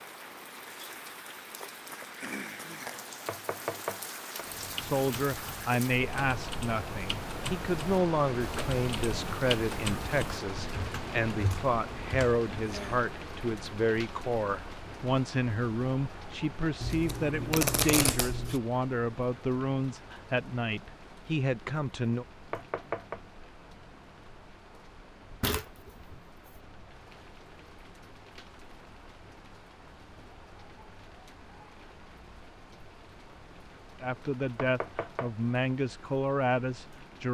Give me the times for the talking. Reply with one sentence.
You can hear the talking from 4.8 to 22.2 s and from 34.0 to 37.2 s.